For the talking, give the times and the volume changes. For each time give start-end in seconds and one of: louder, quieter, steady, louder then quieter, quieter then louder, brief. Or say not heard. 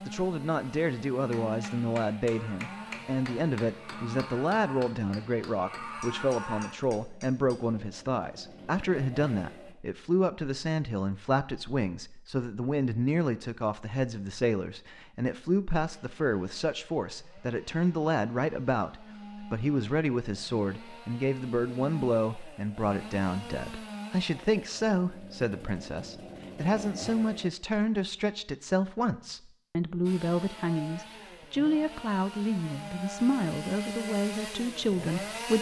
0.1-35.5 steady.